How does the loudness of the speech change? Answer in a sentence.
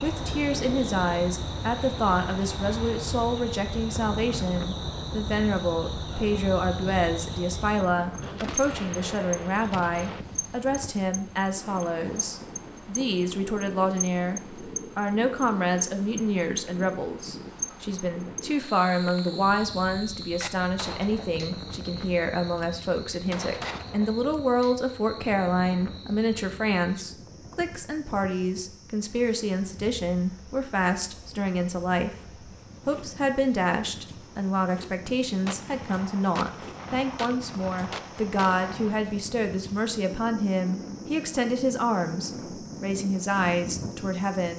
The volume of the speech stays about the same.